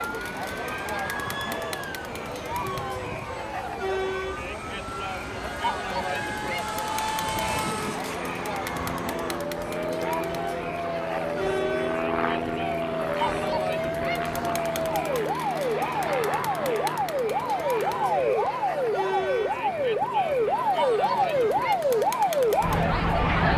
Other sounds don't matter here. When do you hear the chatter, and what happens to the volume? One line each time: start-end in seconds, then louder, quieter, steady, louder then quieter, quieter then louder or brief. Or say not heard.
0.0-23.5 steady.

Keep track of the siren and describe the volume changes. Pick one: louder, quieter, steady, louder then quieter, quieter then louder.
louder.